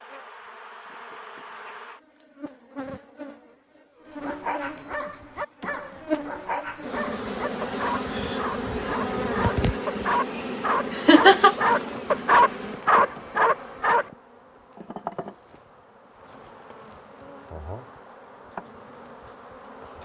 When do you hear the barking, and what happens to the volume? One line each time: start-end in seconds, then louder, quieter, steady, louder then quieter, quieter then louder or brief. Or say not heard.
4.1-14.1 louder.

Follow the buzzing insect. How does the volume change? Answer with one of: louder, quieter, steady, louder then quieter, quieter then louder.
louder then quieter.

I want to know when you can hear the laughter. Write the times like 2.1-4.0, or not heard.
10.4-11.8.